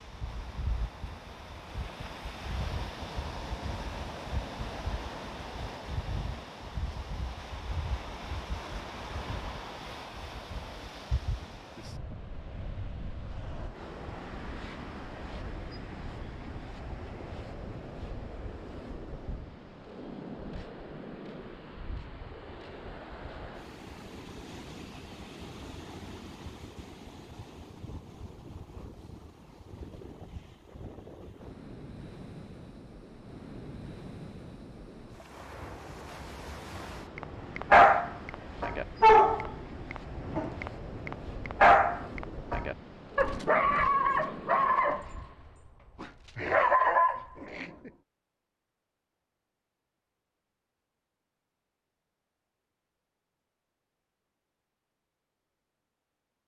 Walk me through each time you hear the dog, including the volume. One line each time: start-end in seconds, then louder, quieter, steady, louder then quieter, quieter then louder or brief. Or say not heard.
37.1-47.9 quieter then louder.